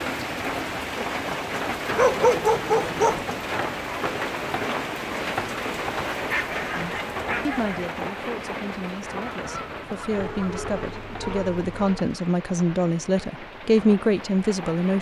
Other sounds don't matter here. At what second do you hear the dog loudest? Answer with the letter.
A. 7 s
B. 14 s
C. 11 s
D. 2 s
D.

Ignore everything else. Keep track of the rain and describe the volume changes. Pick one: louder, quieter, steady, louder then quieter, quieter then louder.
quieter.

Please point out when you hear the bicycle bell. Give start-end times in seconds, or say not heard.
not heard.